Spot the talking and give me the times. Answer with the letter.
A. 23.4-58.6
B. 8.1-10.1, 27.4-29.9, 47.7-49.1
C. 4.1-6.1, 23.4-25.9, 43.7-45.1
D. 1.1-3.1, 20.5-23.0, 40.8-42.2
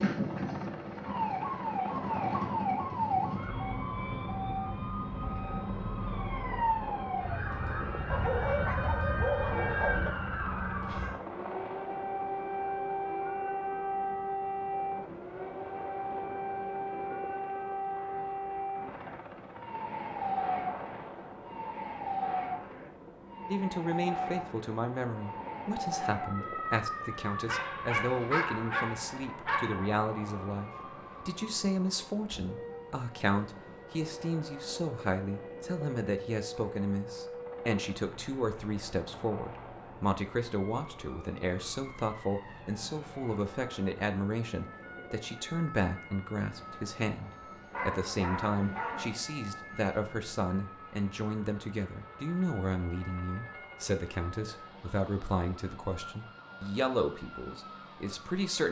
A.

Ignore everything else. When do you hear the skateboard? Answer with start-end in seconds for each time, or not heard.
not heard.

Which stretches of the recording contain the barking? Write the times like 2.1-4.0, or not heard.
8.1-10.1, 27.4-29.9, 47.7-49.1.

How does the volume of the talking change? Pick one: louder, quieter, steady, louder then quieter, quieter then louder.
steady.